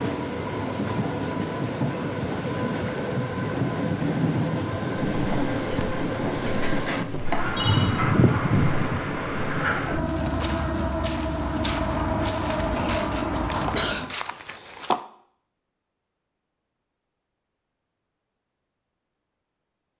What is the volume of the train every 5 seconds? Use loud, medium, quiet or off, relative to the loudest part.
loud, loud, loud, off.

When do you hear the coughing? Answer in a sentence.
The coughing can be heard from 12.8 to 14.2 s.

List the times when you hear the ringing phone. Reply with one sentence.
You can hear the ringing phone from 6.9 to 8.0 s.